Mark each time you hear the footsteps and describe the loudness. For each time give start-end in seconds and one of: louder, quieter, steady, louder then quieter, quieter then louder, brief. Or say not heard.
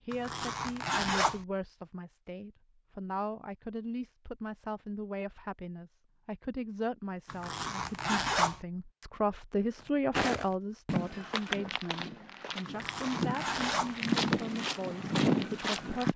10.1-16.1 quieter then louder.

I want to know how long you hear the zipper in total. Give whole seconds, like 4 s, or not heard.
4 s.